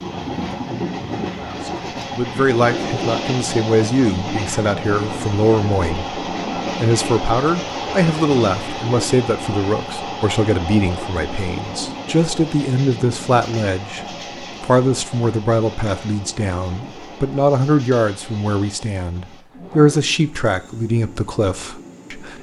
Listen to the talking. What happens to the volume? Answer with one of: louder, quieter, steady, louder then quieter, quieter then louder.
steady.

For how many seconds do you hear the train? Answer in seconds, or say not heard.
22 s.